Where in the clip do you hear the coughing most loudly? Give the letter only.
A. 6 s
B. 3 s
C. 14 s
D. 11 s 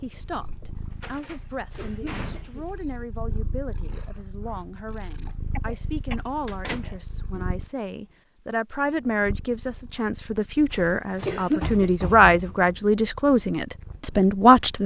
D.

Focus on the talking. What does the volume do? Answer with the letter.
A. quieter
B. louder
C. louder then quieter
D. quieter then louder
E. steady
B.